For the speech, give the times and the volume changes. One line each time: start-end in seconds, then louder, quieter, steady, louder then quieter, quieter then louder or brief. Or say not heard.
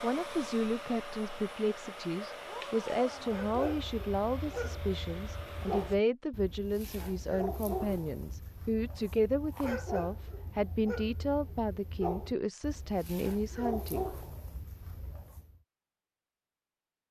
0.0-14.1 steady.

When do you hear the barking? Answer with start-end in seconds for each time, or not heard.
3.1-15.6.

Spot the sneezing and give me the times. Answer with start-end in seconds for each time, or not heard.
not heard.